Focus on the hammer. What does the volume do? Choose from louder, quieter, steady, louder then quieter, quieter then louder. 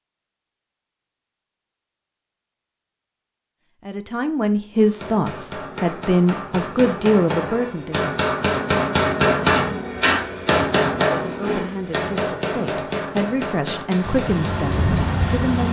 louder then quieter.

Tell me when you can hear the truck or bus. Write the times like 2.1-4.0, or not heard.
14.0-15.6.